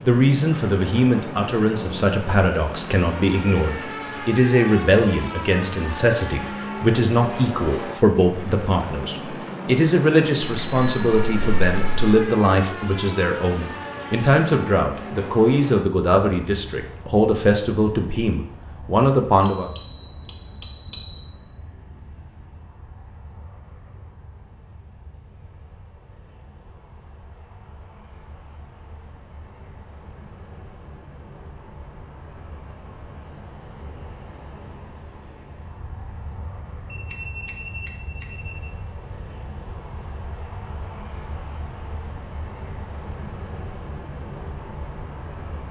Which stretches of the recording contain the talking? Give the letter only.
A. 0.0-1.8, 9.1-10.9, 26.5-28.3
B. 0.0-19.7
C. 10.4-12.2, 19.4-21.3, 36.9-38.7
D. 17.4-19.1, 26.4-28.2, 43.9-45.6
B.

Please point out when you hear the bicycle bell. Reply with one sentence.
You can hear the bicycle bell from 10.4 to 12.2 s, from 19.4 to 21.3 s and from 36.9 to 38.7 s.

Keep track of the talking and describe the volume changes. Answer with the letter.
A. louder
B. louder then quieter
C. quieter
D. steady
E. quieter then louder
D.